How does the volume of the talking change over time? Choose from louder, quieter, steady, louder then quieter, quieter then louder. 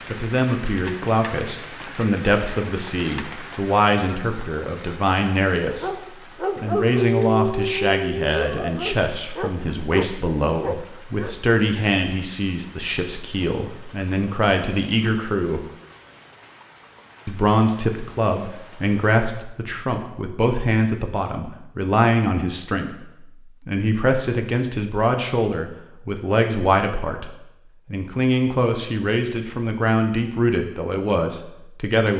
steady.